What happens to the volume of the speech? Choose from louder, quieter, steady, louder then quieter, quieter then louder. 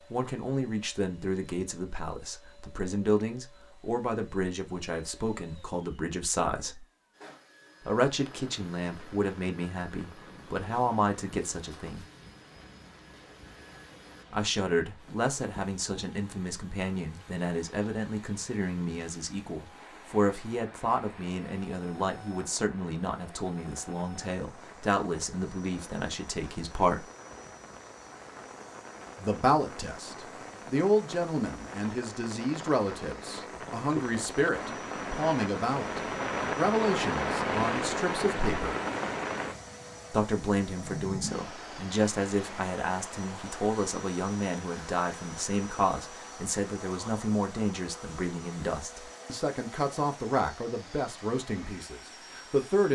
steady.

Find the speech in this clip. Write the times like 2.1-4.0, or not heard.
0.1-6.8, 7.8-12.1, 14.3-27.1, 29.1-38.8, 40.1-52.9.